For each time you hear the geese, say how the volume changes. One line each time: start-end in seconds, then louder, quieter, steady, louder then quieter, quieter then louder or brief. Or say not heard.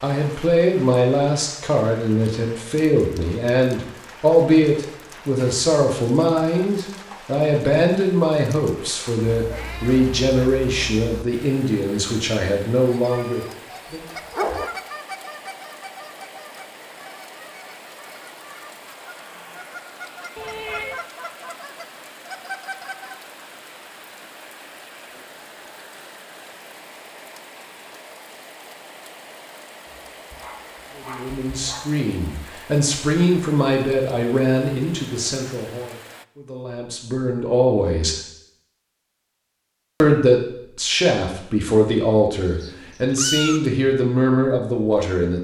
12.8-23.2 quieter then louder.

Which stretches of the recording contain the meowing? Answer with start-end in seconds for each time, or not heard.
9.2-11.2, 20.4-21.1, 42.5-43.6.